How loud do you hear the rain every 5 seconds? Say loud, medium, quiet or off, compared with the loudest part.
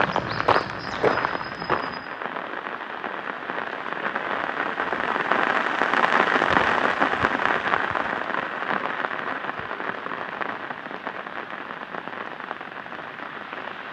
medium, loud, medium.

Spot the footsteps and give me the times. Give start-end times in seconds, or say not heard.
0.0-2.1.